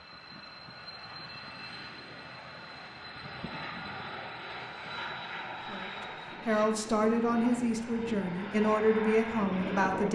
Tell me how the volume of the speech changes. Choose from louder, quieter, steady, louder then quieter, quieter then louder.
steady.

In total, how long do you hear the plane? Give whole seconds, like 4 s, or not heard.
10 s.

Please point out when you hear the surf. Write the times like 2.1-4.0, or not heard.
not heard.